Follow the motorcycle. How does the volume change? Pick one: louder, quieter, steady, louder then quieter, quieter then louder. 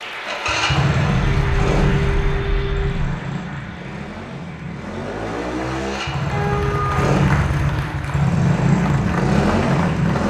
quieter then louder.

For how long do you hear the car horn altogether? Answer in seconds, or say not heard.
3 s.